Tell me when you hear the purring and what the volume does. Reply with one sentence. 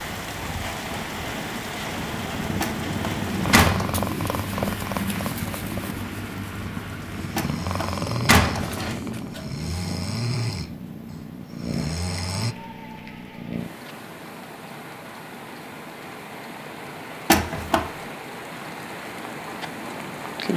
The purring can be heard from 0.0 to 20.5 s, getting quieter.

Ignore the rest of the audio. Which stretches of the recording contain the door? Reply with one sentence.
The door can be heard from 2.6 to 3.9 s, from 7.3 to 8.9 s and from 17.3 to 17.9 s.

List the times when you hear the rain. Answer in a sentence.
The rain can be heard from 0.0 to 20.5 s.